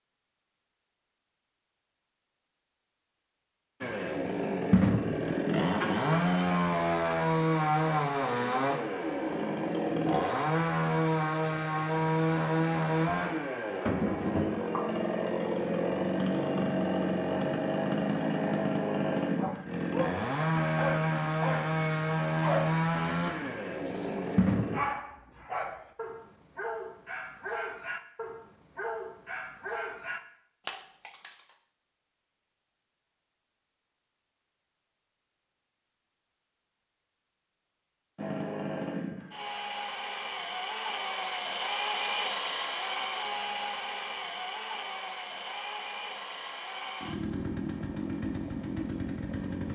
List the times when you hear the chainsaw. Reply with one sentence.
You can hear the chainsaw from 3.8 to 24.8 s and from 38.1 to 49.6 s.